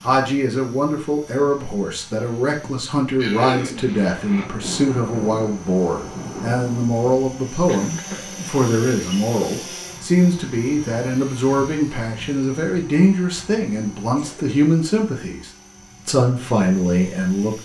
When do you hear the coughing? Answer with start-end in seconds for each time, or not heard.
3.1-3.9, 7.7-8.4, 14.2-14.6.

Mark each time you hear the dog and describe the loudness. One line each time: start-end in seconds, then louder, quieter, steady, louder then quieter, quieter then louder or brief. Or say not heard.
not heard.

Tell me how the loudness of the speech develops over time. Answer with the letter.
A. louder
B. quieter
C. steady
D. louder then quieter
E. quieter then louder
C.